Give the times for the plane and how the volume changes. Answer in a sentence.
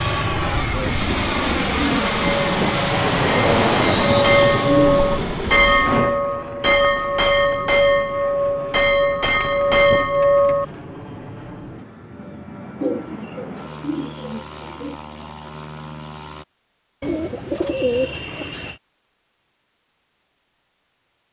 You can hear the plane from 0.0 to 16.4 s, getting quieter.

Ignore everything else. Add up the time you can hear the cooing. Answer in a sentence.
The cooing can be heard for 9 seconds in total.